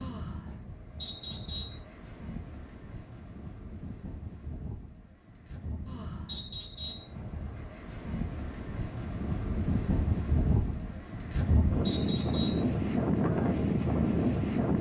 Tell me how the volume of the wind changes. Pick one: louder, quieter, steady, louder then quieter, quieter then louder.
louder.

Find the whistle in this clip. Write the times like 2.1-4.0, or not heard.
1.0-1.9, 6.2-7.1, 11.8-12.7.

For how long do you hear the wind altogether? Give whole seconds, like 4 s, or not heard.
15 s.